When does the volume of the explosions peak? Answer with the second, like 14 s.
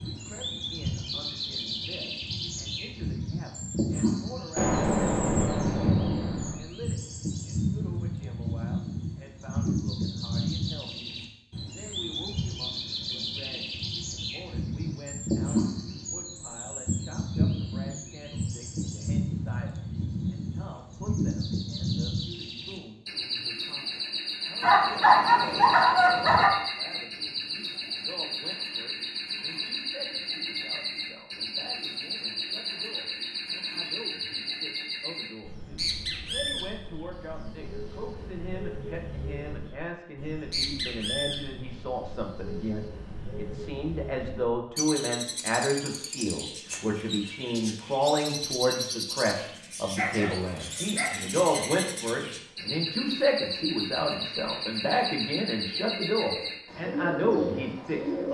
5 s.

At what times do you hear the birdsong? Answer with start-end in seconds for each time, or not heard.
0.0-58.3.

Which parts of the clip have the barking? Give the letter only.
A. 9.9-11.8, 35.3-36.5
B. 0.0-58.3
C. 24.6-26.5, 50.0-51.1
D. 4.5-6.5
C.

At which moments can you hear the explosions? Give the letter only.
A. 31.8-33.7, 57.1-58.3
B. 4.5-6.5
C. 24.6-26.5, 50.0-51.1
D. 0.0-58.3
B.